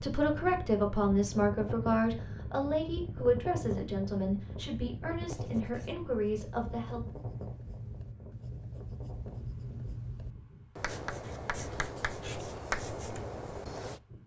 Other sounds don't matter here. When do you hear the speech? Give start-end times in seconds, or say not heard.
0.0-7.0.